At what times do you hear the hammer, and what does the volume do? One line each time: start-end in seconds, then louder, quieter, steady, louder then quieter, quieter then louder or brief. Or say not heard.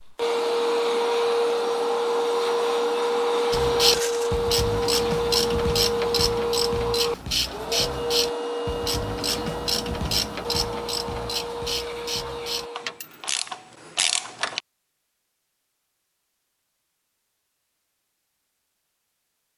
not heard.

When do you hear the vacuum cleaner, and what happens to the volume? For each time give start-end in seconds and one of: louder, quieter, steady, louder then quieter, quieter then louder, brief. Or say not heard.
0.0-13.0 quieter.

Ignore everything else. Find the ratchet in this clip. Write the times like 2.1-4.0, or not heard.
3.5-14.6.